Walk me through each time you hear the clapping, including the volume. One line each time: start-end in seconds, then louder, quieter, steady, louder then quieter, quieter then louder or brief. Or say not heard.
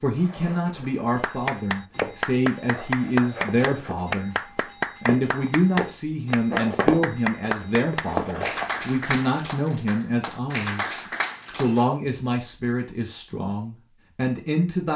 1.1-11.8 steady.